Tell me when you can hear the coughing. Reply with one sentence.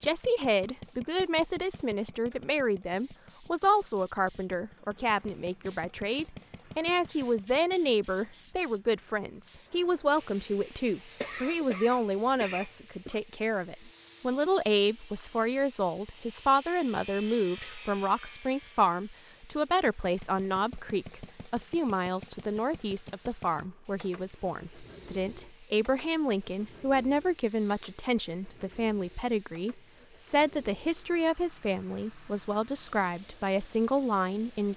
The coughing can be heard from 11.2 to 13.2 s.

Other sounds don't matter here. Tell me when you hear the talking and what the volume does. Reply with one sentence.
The talking can be heard from 0.0 to 34.7 s, at a steady volume.